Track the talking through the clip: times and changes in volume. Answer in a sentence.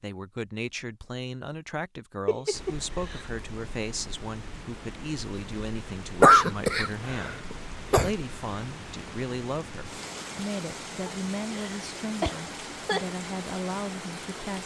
You can hear the talking from 0.0 to 7.4 s, at a steady volume; and from 8.0 to 14.6 s, at a steady volume.